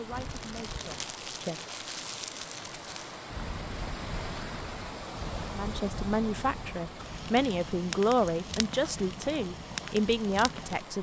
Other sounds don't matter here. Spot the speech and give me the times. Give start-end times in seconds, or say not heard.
0.0-1.6, 5.5-10.9.